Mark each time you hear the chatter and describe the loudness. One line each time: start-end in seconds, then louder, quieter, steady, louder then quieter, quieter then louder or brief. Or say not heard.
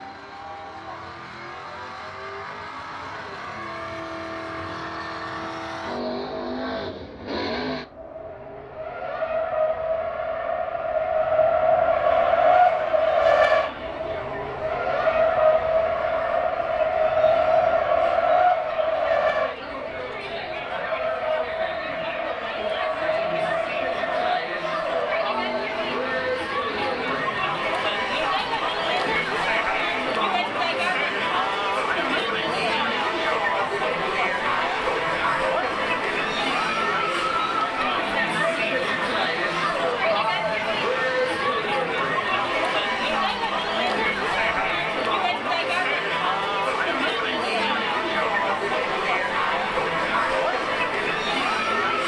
11.8-52.0 louder.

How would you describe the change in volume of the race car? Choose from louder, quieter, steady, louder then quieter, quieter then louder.
louder then quieter.